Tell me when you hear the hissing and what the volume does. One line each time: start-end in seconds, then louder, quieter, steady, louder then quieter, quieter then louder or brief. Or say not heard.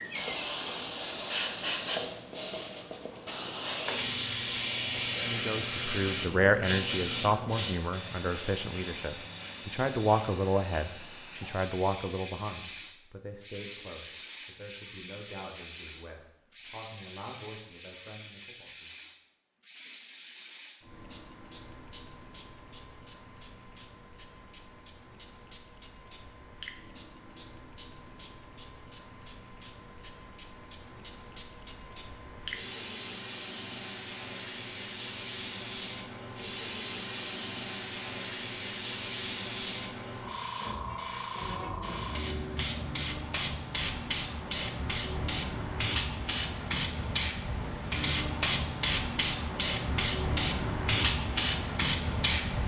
0.0-52.6 quieter then louder.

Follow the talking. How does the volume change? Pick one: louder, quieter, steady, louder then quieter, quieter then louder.
quieter.